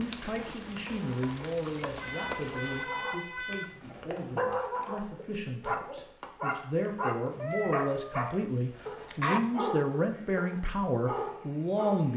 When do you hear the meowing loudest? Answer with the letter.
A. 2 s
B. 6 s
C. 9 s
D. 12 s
C.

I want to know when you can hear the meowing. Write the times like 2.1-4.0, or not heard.
1.9-3.6, 7.3-9.4.